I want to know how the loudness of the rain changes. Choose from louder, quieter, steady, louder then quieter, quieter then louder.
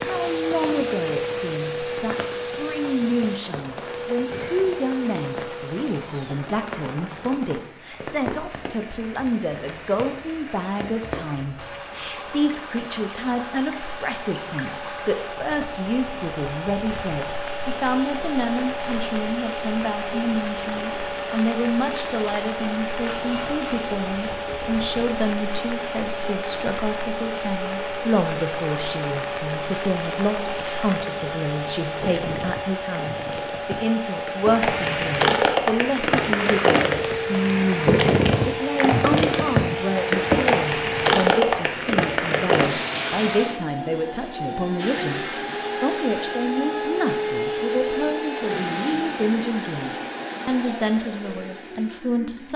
louder.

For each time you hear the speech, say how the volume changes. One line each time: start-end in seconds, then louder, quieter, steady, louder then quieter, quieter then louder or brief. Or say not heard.
0.1-52.5 steady.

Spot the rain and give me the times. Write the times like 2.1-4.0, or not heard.
0.0-43.6.